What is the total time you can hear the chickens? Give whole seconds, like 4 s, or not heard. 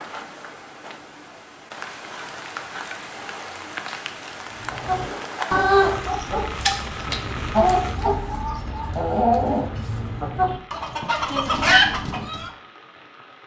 8 s.